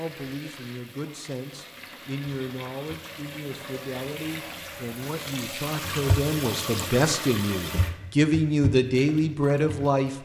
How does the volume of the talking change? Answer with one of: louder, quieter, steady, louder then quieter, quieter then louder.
louder.